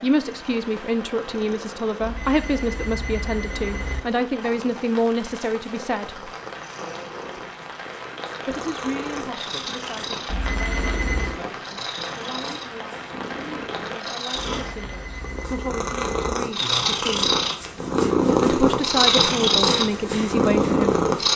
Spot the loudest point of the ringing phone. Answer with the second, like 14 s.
11 s.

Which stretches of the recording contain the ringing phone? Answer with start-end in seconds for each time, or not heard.
2.0-4.0, 10.2-11.4, 14.6-16.4.